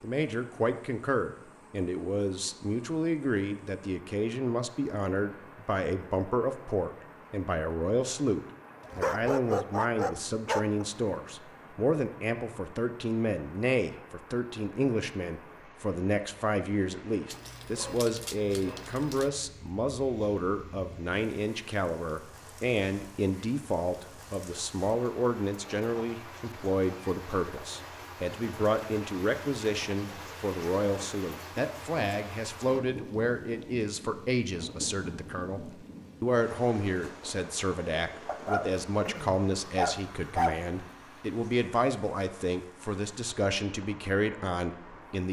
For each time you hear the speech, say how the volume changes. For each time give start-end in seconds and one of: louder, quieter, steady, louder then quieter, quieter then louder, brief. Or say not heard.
0.0-45.2 steady.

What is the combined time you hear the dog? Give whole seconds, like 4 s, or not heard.
6 s.